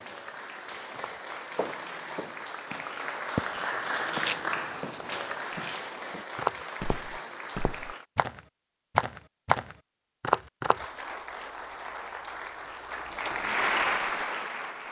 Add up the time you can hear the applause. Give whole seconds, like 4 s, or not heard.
12 s.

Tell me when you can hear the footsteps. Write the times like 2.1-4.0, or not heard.
0.9-10.8.